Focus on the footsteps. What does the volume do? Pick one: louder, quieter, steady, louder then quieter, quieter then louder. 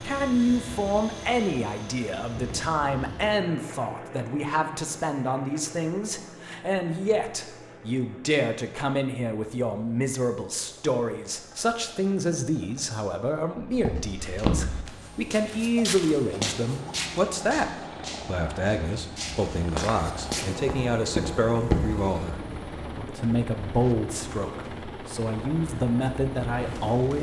quieter then louder.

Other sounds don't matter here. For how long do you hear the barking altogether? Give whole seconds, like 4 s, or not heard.
not heard.